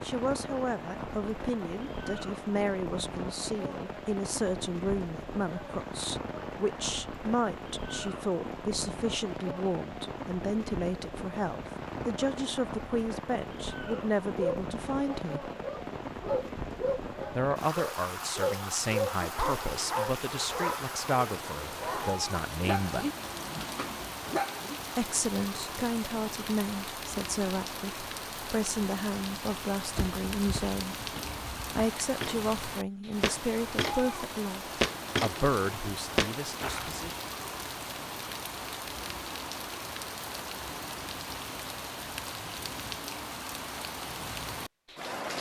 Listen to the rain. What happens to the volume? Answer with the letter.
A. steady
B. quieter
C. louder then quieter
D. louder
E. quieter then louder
A.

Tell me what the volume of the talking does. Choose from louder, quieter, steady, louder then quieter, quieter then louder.
steady.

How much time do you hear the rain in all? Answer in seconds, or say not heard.
45 s.